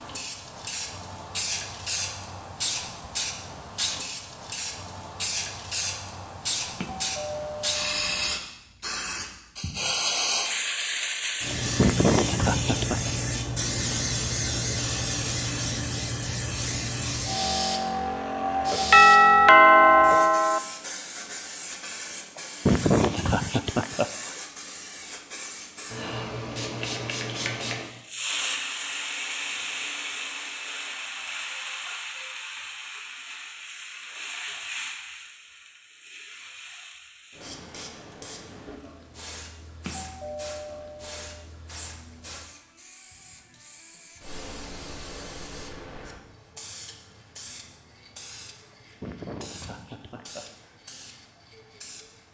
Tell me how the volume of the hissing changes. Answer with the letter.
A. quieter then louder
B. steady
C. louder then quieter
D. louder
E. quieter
E.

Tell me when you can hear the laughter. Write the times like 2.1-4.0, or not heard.
11.8-13.0, 22.4-24.4, 48.7-50.8.